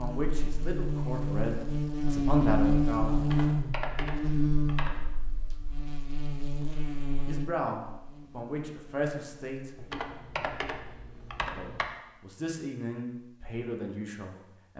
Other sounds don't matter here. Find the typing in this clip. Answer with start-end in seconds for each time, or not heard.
3.1-5.1, 9.8-11.9.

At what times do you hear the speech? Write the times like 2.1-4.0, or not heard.
0.0-3.2, 7.2-9.7, 11.6-14.7.